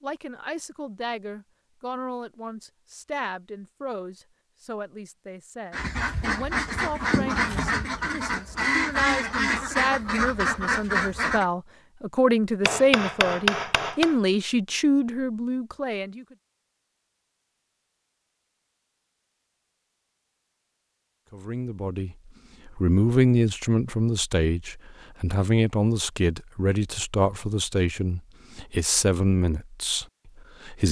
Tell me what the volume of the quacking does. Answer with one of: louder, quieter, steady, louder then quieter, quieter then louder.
steady.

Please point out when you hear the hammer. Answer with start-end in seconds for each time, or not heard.
12.7-14.2.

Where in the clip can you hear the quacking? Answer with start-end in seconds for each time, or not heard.
5.7-11.4.